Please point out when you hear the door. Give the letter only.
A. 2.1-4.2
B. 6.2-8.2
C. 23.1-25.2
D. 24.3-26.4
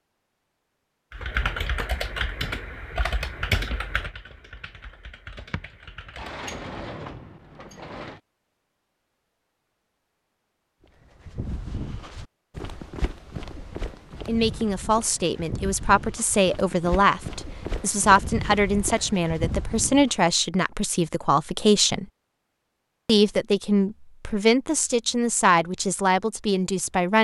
B.